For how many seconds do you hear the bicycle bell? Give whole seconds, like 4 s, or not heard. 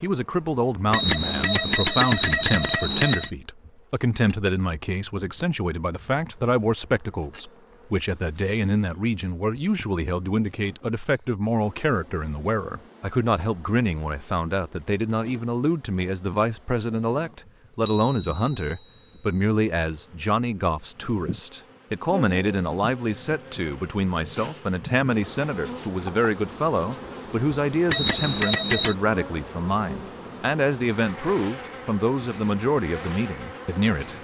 5 s.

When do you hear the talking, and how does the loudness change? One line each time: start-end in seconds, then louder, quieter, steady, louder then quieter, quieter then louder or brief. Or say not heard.
0.0-34.1 steady.